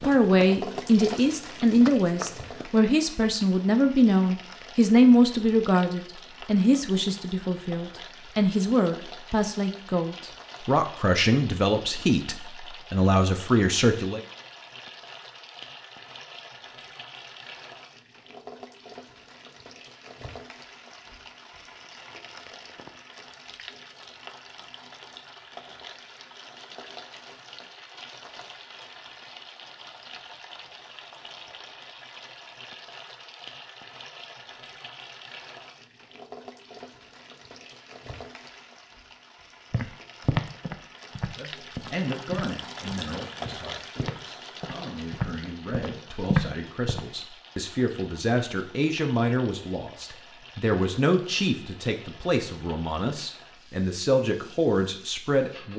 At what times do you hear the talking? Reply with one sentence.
The talking can be heard from 0.0 to 14.2 s and from 41.4 to 55.7 s.